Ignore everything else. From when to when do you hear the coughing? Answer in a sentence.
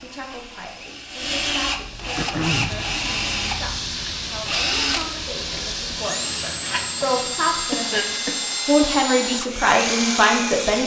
You can hear the coughing from 2.1 to 2.9 s and from 7.7 to 8.4 s.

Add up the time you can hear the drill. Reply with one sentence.
The drill can be heard for 11 seconds in total.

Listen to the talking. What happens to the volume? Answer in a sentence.
The loudness of the talking goes up.